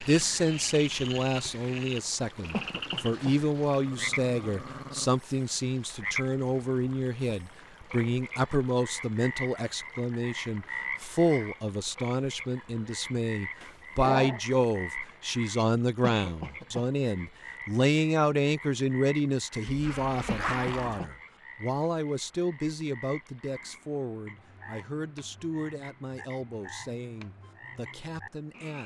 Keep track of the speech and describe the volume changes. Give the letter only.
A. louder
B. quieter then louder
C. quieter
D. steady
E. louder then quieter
C.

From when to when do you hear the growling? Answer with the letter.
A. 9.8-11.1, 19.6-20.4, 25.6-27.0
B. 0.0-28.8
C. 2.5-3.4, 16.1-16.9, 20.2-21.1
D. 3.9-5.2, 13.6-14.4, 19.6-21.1
D.